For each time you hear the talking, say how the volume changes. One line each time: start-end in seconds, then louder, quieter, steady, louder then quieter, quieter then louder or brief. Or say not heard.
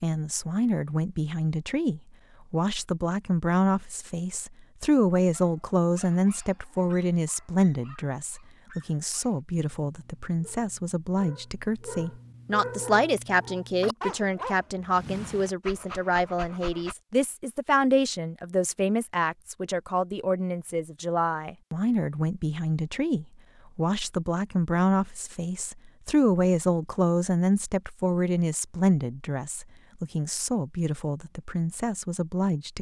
0.0-32.7 steady.